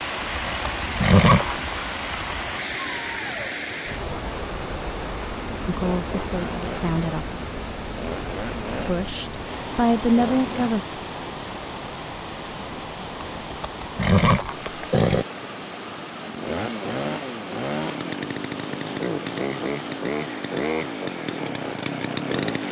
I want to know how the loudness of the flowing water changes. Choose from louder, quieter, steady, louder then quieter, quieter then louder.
quieter.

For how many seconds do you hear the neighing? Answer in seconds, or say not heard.
3 s.